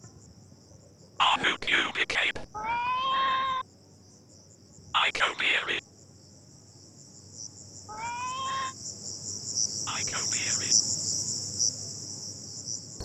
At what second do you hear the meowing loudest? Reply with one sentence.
The volume of the meowing peaks at 3 seconds.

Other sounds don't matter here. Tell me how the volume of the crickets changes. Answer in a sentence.
The loudness of the crickets goes up.